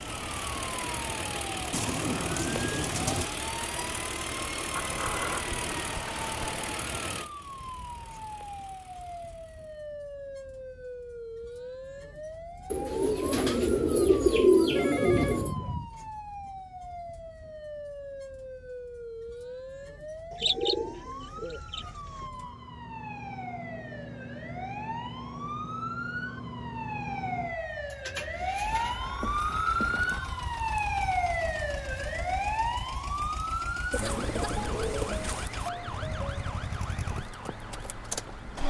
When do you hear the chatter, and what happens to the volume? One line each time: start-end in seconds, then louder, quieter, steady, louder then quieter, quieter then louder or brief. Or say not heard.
not heard.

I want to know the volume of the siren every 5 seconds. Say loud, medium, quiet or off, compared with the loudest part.
medium, medium, medium, medium, medium, loud, loud, medium.